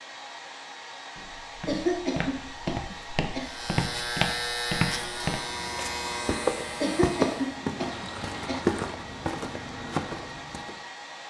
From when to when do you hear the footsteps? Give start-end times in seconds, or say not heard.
1.1-10.8.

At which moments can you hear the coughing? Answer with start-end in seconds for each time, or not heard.
1.6-3.5, 6.8-8.7.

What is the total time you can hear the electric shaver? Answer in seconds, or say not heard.
4 s.